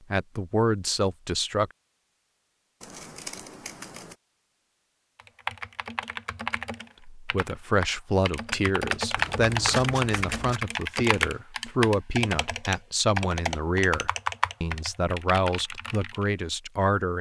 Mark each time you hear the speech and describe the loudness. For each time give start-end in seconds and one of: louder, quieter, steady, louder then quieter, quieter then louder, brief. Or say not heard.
0.1-1.7 brief
7.2-17.1 steady.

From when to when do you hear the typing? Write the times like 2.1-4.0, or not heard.
5.2-16.3.